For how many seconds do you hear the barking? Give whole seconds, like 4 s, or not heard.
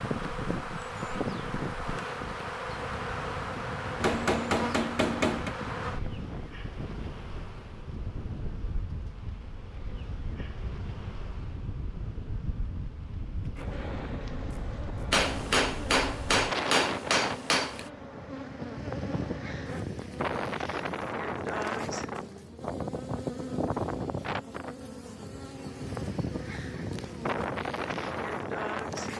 not heard.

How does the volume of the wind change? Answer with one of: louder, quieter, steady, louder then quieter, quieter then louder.
louder.